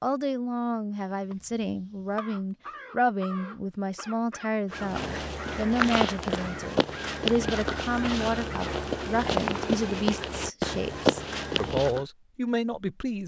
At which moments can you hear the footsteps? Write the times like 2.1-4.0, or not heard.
4.7-12.1.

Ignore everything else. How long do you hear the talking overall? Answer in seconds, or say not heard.
13 s.